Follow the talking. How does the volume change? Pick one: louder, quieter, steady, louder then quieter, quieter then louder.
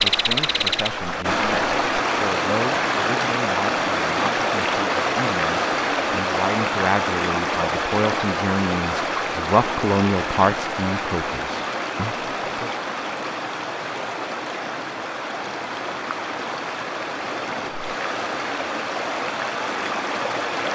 louder.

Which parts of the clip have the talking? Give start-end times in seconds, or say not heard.
0.0-12.7.